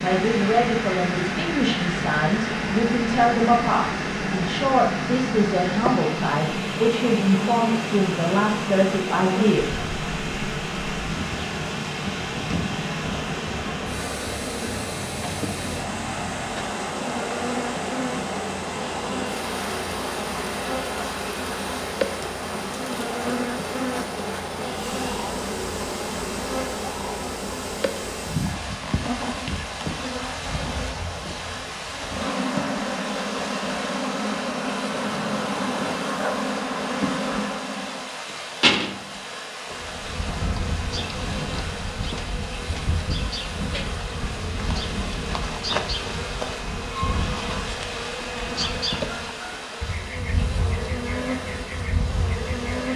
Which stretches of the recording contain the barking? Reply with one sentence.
The barking can be heard from 35.0 to 36.5 s.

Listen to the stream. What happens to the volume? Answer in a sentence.
The volume of the stream goes down.